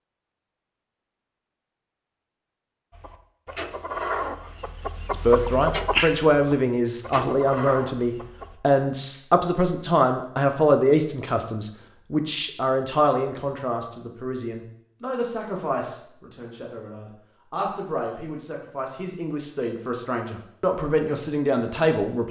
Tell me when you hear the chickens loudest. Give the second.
6 s.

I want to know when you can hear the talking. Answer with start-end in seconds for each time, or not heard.
5.1-22.2.